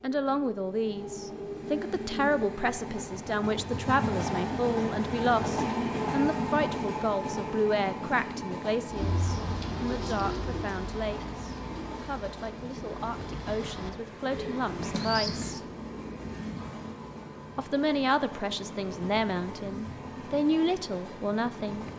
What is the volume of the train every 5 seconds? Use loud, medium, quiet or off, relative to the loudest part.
loud, loud, medium, medium, medium.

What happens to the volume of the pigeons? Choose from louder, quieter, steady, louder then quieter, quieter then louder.
quieter then louder.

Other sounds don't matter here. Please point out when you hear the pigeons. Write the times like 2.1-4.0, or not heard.
8.9-15.6.